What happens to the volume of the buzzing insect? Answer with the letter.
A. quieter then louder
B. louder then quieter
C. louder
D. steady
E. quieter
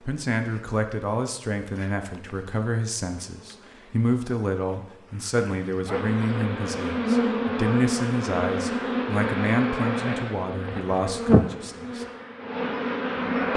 C.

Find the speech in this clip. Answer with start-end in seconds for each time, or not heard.
0.0-12.1.